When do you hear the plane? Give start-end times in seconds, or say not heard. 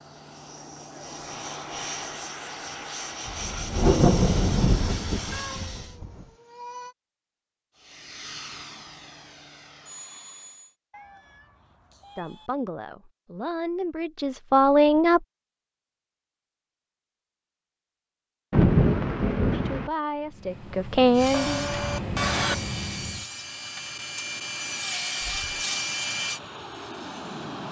0.0-6.0, 7.8-10.7, 20.2-27.6.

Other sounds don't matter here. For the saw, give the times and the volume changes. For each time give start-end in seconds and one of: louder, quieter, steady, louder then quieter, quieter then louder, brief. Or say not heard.
21.1-26.4 quieter then louder.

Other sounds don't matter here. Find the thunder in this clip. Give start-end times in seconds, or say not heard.
3.2-6.2, 18.5-19.9.